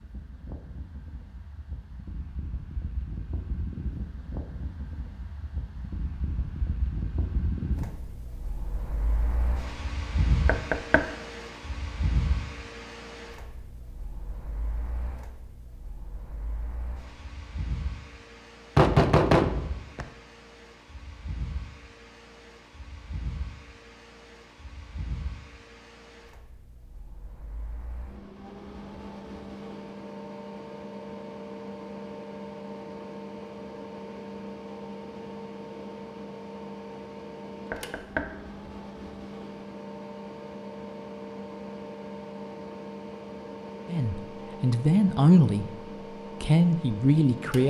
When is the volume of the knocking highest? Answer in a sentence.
The volume of the knocking peaks at 19 seconds.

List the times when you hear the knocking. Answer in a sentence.
You can hear the knocking from 10.4 to 11.1 s, from 18.8 to 20.1 s and from 37.7 to 38.3 s.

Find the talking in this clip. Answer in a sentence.
You can hear the talking from 43.9 to 45.6 s and from 46.4 to 47.6 s.